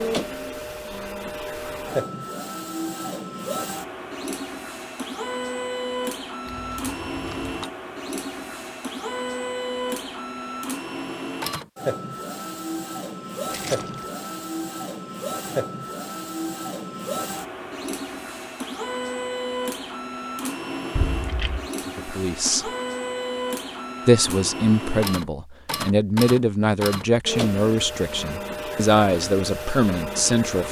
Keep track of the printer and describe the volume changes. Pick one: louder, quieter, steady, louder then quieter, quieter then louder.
steady.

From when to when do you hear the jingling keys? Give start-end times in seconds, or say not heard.
6.5-7.7, 13.5-14.1, 20.9-21.7.